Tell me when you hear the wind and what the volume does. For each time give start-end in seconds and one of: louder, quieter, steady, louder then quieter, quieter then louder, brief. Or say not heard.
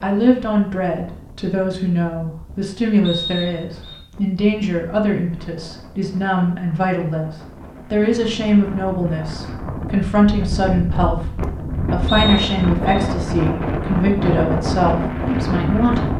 0.0-16.1 louder.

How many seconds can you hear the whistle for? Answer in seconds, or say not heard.
2 s.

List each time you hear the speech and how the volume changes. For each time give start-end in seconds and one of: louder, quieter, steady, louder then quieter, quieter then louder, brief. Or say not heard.
0.0-16.1 steady.